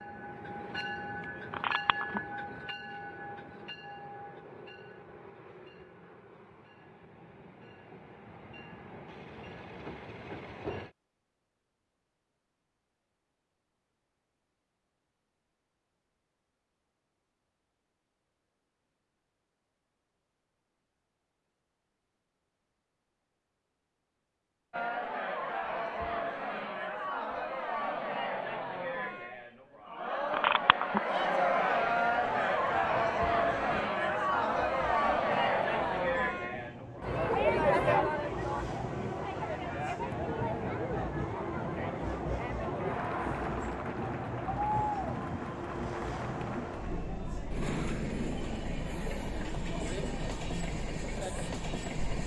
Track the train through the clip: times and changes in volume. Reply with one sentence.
You can hear the train from 0.0 to 10.9 s, getting quieter then louder; and from 32.0 to 52.2 s, getting louder.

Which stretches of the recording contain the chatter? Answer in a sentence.
You can hear the chatter from 24.7 to 52.2 s.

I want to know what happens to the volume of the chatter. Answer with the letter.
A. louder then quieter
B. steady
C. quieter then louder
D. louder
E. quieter
A.